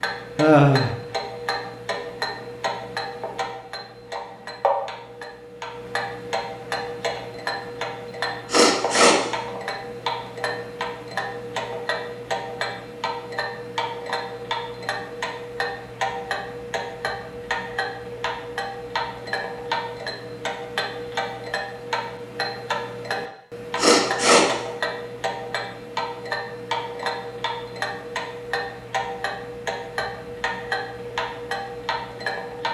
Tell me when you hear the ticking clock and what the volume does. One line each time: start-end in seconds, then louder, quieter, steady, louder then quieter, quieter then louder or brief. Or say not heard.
0.0-32.6 steady.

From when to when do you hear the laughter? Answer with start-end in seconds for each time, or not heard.
0.3-0.9.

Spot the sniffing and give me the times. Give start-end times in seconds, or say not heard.
8.5-9.2, 23.8-24.4.